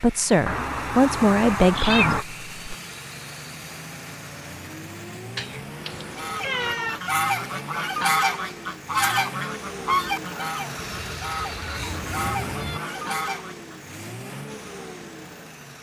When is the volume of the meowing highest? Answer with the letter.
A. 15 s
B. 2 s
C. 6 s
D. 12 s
B.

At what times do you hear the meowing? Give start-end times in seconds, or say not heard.
0.5-2.2, 5.3-7.0, 10.8-12.8.